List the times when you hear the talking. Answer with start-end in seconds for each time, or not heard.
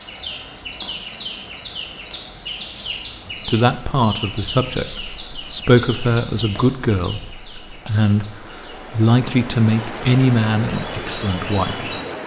3.2-11.9.